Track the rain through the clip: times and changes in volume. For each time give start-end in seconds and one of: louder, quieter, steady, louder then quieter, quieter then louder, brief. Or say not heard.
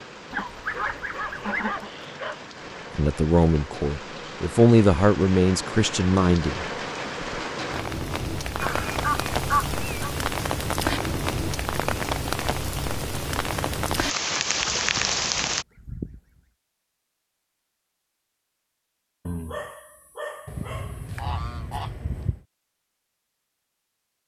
0.0-15.7 louder.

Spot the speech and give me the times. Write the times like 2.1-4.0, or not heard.
3.0-6.7.